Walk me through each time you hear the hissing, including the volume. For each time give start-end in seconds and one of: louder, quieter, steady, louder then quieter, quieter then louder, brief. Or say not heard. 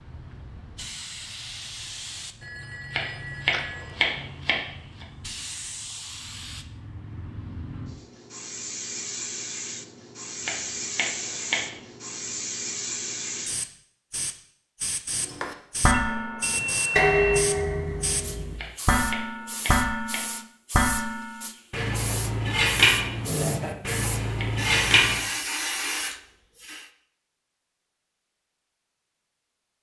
0.0-26.9 louder.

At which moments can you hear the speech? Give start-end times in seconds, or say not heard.
not heard.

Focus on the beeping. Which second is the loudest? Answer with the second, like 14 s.
17 s.